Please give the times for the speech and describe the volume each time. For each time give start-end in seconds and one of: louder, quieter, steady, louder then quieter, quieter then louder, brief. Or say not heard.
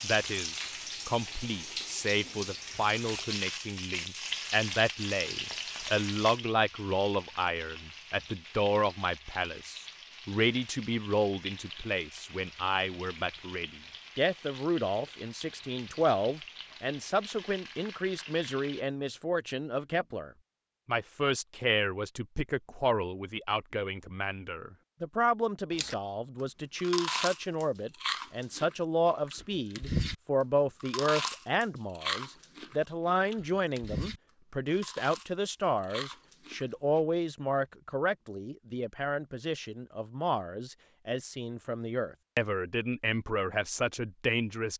0.0-44.7 steady.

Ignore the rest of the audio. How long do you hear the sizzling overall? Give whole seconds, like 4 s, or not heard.
19 s.